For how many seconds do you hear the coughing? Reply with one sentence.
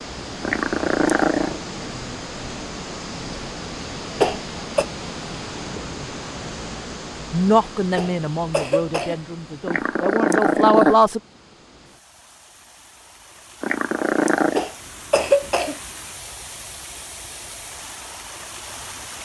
The coughing can be heard for 3 seconds in total.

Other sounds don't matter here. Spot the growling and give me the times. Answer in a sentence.
You can hear the growling from 0.4 to 1.6 s, from 9.7 to 11.0 s and from 13.6 to 14.7 s.